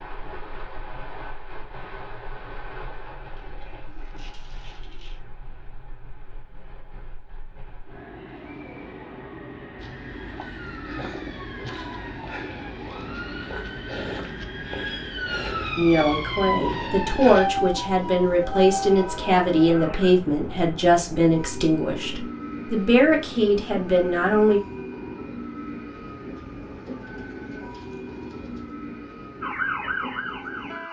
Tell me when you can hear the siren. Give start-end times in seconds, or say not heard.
9.8-20.1, 29.4-30.8.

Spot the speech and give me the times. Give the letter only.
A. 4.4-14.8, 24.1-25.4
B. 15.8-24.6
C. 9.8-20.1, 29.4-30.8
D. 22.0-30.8
B.